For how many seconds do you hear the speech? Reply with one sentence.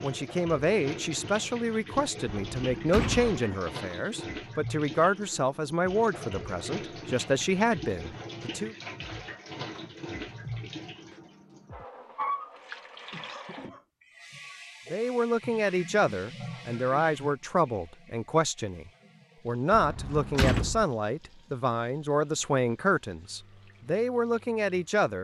The speech can be heard for 19 seconds in total.